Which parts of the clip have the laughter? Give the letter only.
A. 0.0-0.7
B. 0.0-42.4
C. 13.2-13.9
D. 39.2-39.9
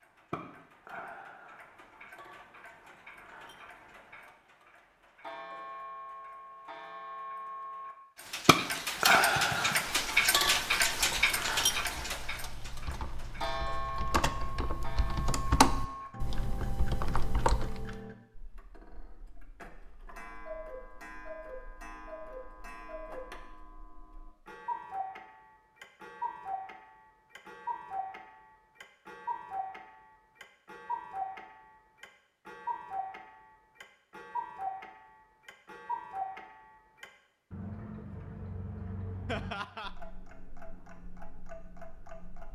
D.